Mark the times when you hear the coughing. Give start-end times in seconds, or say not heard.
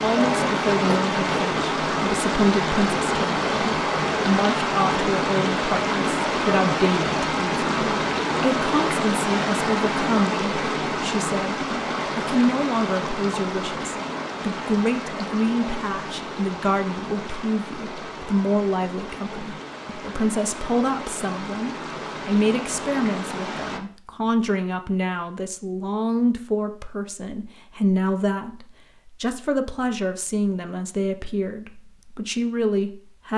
0.1-1.0.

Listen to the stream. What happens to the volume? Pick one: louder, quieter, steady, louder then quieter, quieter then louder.
quieter.